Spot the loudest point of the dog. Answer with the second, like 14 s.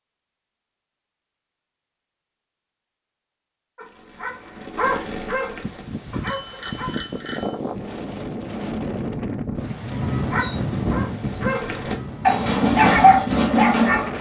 13 s.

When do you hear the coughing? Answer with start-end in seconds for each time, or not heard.
not heard.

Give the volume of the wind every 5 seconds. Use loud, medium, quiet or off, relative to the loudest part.
off, loud, loud.